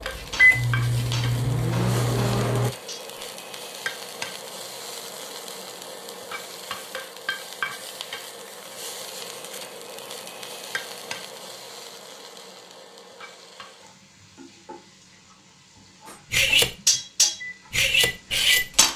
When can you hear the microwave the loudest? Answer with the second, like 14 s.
1 s.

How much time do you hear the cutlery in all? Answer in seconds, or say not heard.
6 s.